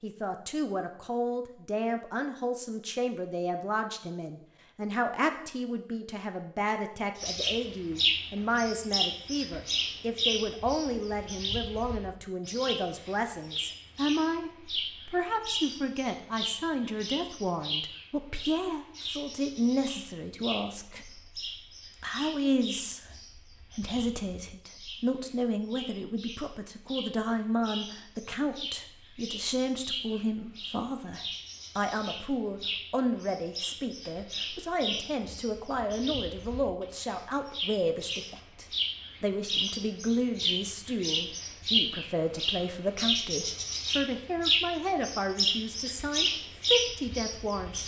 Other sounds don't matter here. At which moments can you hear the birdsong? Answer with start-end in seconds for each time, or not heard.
7.2-47.8.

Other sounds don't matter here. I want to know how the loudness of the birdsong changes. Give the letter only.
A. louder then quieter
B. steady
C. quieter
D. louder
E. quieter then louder
E.